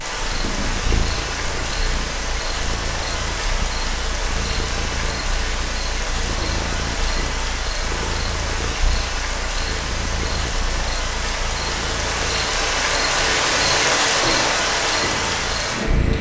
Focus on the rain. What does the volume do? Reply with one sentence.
The loudness of the rain goes up.